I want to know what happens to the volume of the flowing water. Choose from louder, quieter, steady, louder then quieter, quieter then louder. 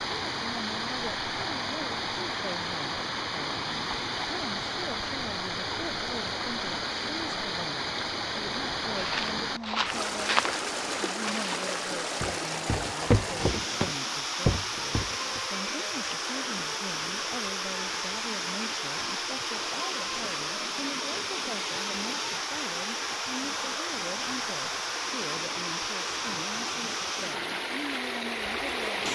steady.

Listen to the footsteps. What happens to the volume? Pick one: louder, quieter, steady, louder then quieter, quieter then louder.
quieter then louder.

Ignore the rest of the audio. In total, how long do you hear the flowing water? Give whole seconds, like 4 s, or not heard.
29 s.